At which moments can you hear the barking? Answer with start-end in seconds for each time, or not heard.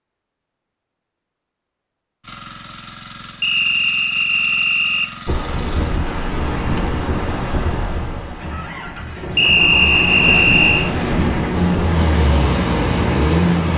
not heard.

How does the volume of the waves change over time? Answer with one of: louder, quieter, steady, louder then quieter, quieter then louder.
quieter then louder.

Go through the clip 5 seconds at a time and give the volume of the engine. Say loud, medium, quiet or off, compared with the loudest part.
quiet, medium, loud.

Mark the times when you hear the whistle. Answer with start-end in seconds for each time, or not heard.
3.4-5.1, 9.3-10.9.